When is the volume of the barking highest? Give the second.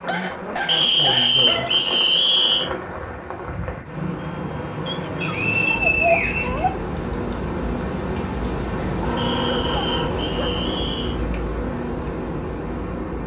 6 s.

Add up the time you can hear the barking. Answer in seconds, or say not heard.
6 s.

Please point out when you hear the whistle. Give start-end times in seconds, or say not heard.
0.7-2.7, 5.2-7.2, 9.2-11.2.